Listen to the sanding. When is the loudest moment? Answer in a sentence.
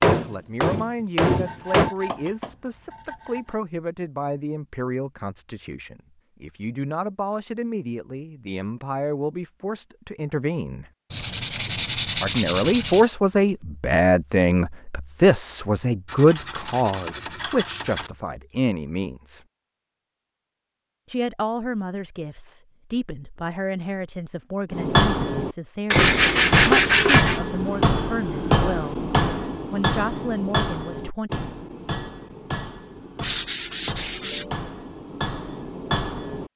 The loudest moment of the sanding is at 27 seconds.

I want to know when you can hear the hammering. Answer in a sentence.
The hammering can be heard from 0.0 to 1.9 s and from 24.7 to 36.5 s.